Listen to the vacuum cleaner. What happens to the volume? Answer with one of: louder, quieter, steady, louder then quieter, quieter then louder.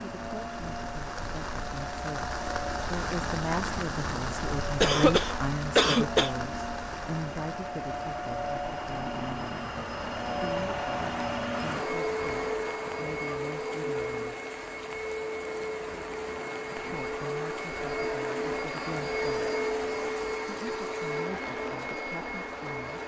louder.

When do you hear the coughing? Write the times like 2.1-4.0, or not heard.
4.8-6.3.